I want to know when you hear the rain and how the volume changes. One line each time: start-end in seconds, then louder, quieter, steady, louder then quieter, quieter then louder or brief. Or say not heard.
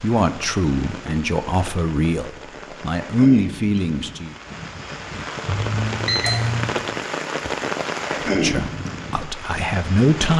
0.0-10.3 louder.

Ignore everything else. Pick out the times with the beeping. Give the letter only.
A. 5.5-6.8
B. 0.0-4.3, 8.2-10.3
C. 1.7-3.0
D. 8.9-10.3
A.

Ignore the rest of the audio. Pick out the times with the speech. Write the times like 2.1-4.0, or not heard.
0.0-4.3, 8.2-10.3.